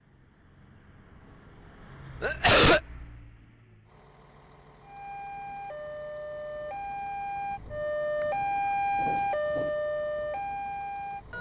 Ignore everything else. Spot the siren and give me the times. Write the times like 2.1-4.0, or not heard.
4.8-11.3.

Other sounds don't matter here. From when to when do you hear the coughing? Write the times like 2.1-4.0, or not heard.
2.2-2.8, 8.9-9.8.